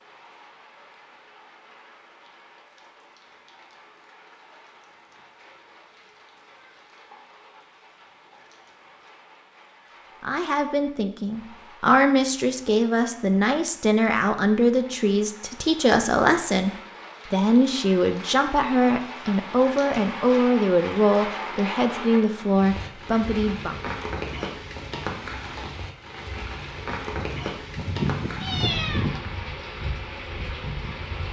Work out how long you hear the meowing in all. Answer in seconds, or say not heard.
2 s.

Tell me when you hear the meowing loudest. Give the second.
29 s.